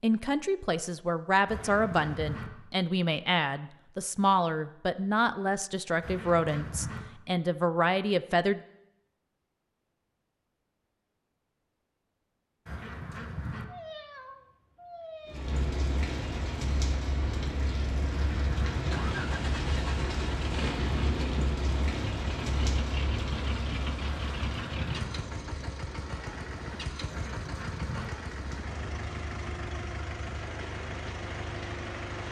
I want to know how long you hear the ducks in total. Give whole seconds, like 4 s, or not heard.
6 s.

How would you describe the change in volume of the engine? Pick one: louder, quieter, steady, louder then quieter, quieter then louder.
steady.